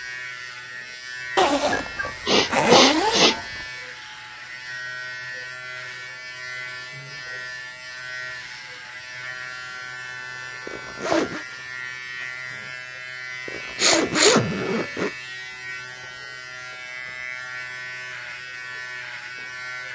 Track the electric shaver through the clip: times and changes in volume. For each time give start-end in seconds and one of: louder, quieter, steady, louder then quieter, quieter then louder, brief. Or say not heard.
0.0-19.9 steady.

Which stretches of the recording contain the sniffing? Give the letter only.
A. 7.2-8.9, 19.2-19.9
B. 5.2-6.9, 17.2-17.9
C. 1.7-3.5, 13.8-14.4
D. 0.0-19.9
C.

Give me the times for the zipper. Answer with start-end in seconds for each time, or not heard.
1.4-3.6, 10.7-11.4, 13.4-15.1.